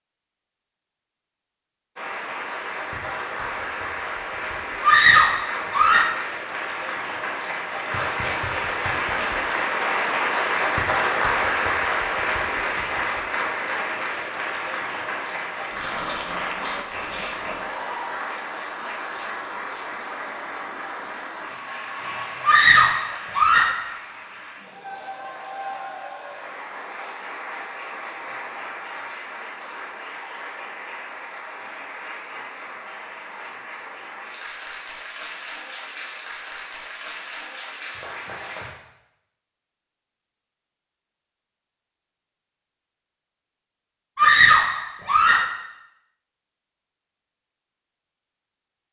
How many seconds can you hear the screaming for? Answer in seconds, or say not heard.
4 s.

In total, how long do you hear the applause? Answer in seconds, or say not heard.
37 s.